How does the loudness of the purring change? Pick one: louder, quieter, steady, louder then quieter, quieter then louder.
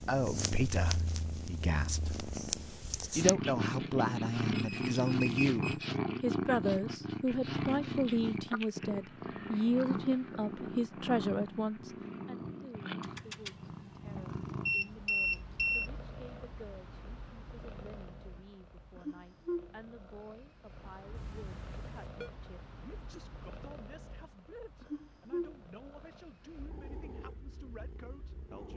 quieter.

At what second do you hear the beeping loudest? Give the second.
15 s.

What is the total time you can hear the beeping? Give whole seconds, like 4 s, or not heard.
4 s.